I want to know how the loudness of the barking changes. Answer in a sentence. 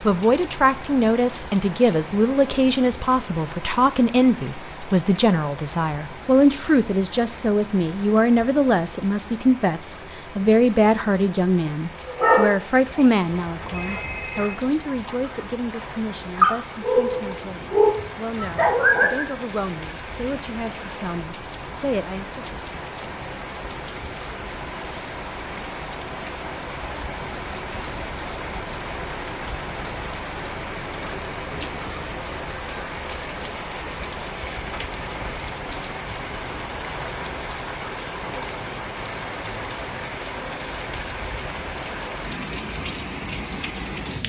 The loudness of the barking goes down, then up.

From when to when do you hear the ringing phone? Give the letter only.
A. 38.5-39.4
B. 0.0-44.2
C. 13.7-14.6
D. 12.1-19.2
C.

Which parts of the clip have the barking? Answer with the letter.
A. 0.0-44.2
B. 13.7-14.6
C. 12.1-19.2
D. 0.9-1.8
C.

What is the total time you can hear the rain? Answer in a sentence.
The rain can be heard for 44 seconds in total.